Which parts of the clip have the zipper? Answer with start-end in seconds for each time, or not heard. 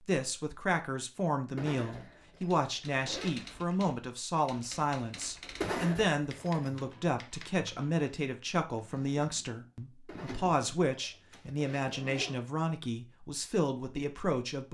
1.6-3.4, 5.6-6.6, 10.1-12.4.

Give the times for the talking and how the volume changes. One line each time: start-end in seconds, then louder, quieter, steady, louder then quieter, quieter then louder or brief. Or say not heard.
0.1-14.6 steady.